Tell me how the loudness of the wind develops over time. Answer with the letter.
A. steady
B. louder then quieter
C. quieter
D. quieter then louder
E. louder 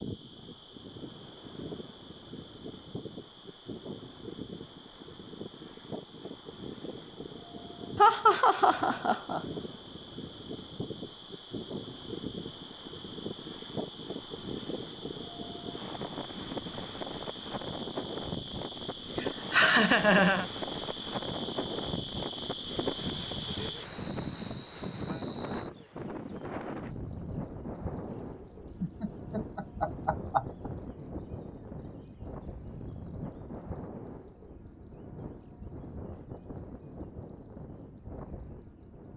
B.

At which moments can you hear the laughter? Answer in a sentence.
The laughter can be heard from 8.0 to 9.4 s, from 19.1 to 20.4 s and from 28.8 to 30.7 s.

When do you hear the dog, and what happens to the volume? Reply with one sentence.
You can't hear the dog here.